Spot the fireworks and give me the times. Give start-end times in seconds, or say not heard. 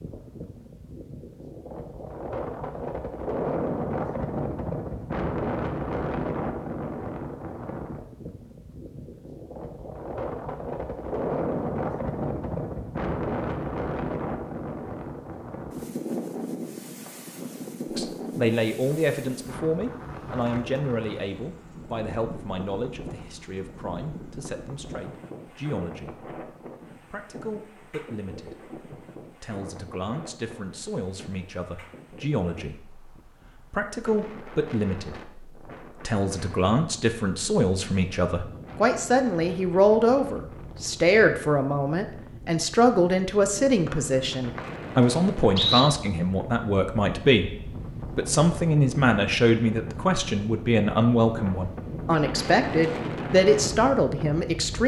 not heard.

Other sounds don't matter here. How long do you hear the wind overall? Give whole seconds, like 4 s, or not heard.
55 s.